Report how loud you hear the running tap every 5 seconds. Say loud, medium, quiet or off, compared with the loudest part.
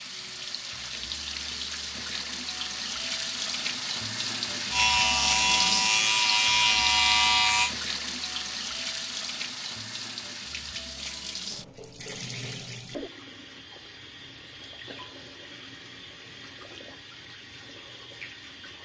loud, loud, medium, quiet.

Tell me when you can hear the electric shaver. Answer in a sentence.
The electric shaver can be heard from 4.7 to 7.8 s.